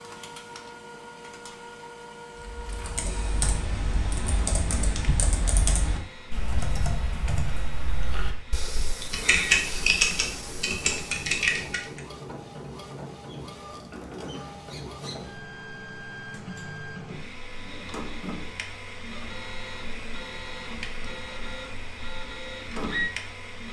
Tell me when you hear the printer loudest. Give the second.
23 s.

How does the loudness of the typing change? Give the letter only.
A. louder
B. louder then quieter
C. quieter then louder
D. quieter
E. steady
A.